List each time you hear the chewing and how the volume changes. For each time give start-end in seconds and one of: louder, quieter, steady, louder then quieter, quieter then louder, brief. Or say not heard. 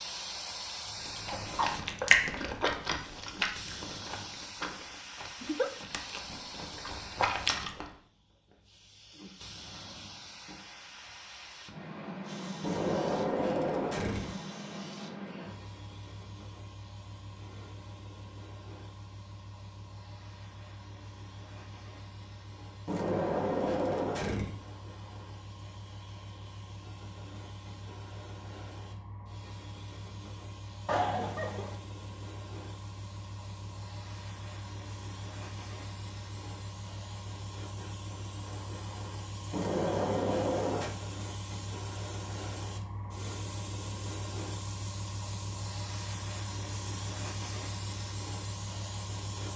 1.1-7.8 quieter then louder.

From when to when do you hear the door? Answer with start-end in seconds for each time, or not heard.
12.6-14.3, 22.9-24.6, 39.5-40.9.